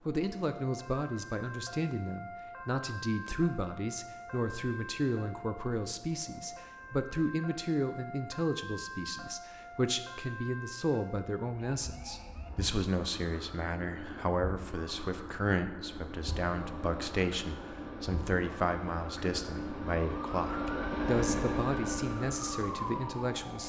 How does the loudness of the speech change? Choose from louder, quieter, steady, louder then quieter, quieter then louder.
steady.